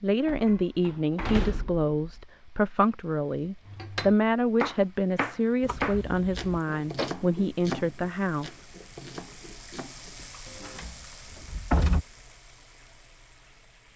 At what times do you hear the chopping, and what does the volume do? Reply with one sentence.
You can hear the chopping from 3.6 to 10.8 s, getting quieter.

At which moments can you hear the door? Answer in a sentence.
The door can be heard from 0.2 to 2.2 s, from 5.6 to 7.1 s and from 10.2 to 12.1 s.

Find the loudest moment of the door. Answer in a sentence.
The loudest moment of the door is at 12 seconds.